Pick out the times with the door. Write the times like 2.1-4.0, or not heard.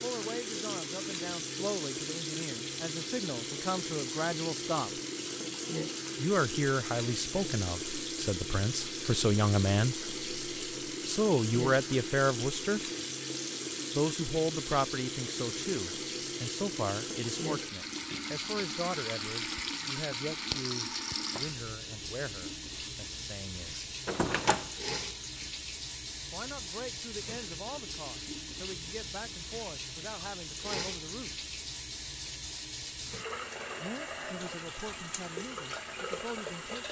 24.1-24.8.